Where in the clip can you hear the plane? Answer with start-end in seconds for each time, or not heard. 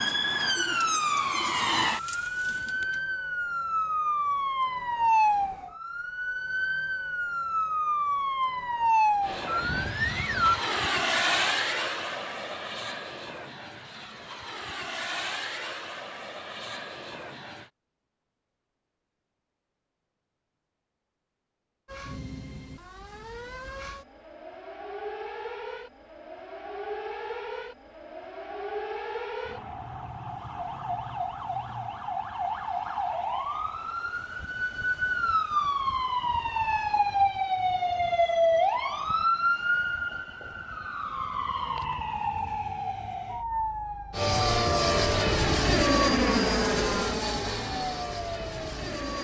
9.2-17.7, 44.1-49.1.